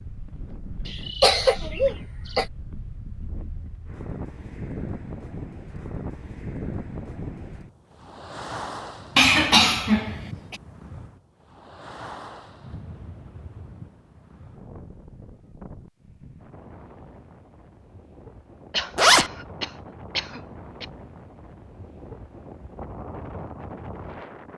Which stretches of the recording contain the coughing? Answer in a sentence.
The coughing can be heard from 0.8 to 2.5 s, from 9.2 to 10.6 s and from 18.7 to 20.9 s.